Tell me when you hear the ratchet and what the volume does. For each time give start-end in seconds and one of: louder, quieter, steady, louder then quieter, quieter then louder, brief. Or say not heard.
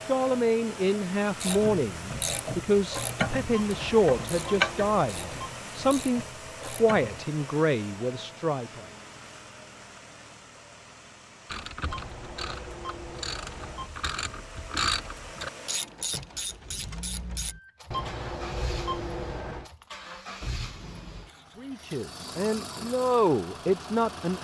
1.4-7.2 louder then quieter
11.4-17.6 louder then quieter.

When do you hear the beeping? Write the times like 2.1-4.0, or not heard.
3.5-5.5, 11.8-13.9, 17.9-19.7.